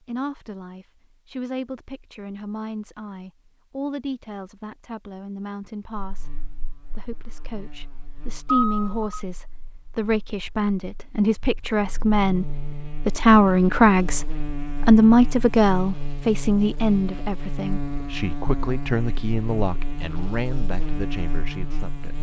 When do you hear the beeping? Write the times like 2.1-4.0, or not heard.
8.4-9.2.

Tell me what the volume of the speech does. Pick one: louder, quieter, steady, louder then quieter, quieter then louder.
louder then quieter.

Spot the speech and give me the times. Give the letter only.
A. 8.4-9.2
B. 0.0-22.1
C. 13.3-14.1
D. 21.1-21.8
B.